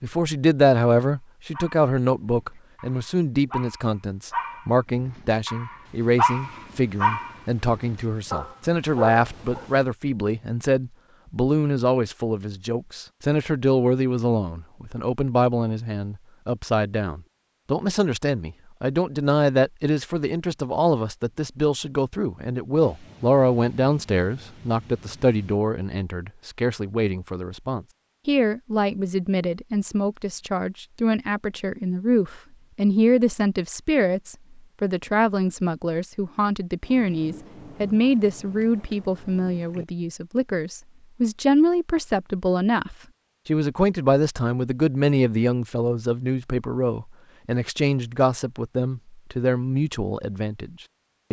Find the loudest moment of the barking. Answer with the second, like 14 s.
6 s.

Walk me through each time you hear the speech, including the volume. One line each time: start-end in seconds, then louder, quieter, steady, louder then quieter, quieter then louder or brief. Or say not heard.
0.0-51.2 steady.